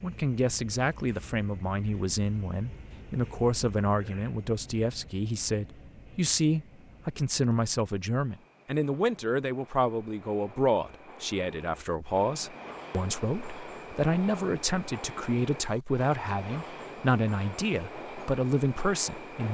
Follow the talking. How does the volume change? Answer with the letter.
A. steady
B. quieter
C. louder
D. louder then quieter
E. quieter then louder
A.